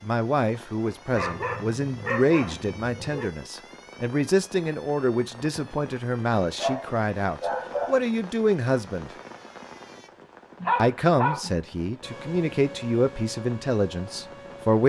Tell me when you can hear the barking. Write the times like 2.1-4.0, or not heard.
1.1-3.3, 6.5-8.1, 10.6-11.6.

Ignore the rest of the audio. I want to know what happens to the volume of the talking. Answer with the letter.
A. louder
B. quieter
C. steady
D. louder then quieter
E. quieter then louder
C.